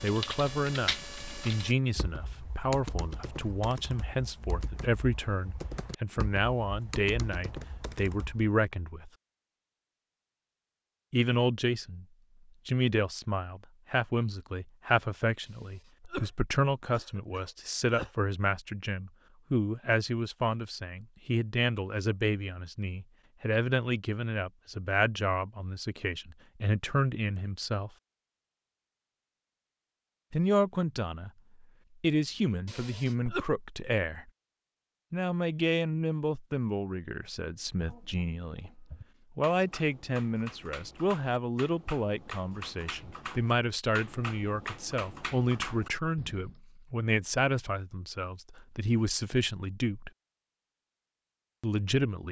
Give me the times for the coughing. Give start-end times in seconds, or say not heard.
15.4-18.1, 32.6-33.5.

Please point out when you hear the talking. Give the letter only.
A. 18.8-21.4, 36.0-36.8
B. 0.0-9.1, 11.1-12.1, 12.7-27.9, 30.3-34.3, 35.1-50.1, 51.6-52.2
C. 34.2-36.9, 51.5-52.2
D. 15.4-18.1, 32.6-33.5
B.